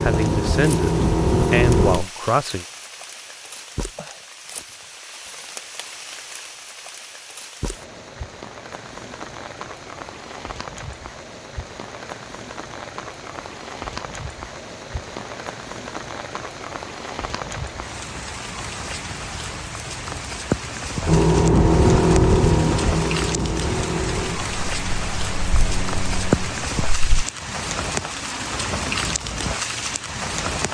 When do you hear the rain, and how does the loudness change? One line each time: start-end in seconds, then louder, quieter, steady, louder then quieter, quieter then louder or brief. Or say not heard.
0.0-30.7 louder.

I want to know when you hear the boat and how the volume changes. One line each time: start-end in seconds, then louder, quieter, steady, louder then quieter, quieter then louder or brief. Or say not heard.
0.0-2.1 brief
21.0-27.2 quieter.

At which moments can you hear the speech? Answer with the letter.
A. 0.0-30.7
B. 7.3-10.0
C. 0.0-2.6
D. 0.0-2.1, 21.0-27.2
C.